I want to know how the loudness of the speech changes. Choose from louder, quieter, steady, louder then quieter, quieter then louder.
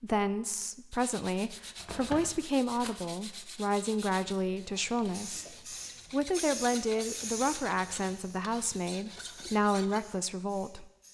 steady.